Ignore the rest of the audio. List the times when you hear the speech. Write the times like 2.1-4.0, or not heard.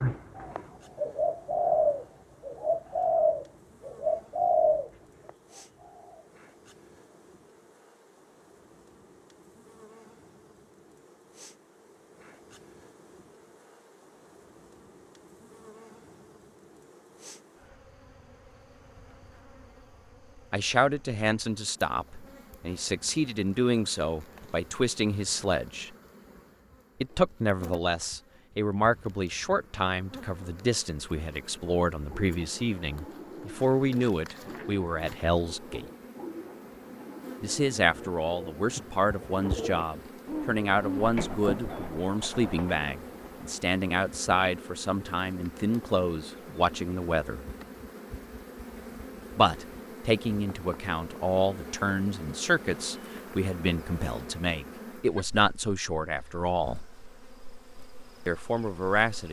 20.5-25.9, 27.0-35.9, 37.4-47.5, 49.4-56.9, 58.2-59.2.